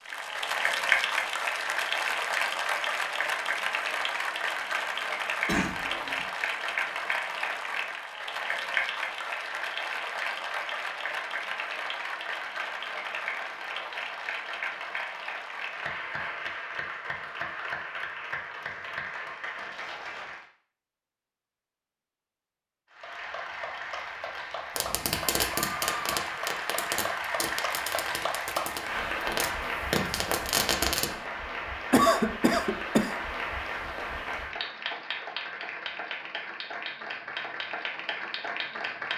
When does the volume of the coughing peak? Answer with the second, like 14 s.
32 s.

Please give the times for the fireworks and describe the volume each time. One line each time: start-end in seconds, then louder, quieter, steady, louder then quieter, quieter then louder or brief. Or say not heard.
24.8-31.1 quieter then louder.